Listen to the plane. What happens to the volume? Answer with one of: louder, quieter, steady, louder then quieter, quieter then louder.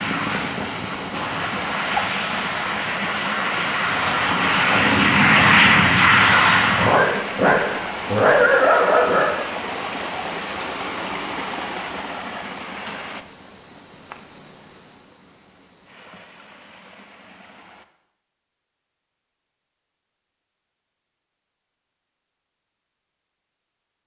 louder.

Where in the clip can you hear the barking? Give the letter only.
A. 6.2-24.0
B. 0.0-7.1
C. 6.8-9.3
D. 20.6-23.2
C.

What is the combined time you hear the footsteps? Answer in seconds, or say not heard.
not heard.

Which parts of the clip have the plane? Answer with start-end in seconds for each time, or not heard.
0.0-7.1.